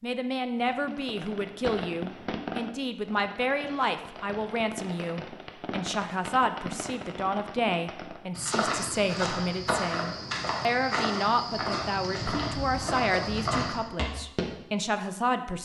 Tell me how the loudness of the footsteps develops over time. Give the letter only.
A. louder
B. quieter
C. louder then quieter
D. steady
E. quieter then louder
D.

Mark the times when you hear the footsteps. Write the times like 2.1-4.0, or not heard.
8.3-14.4.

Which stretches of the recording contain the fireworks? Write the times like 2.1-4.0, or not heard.
0.6-8.3.